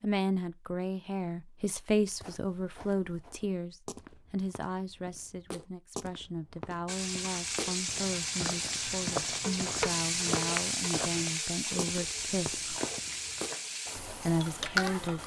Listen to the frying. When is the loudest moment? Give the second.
10 s.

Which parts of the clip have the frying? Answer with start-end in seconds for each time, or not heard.
6.8-15.2.